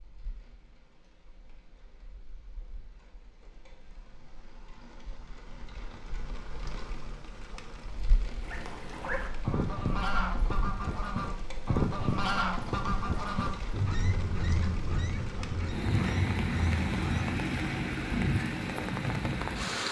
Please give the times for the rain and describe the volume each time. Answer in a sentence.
The rain can be heard from 0.0 to 19.8 s, getting louder.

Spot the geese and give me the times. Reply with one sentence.
You can hear the geese from 8.4 to 17.4 s.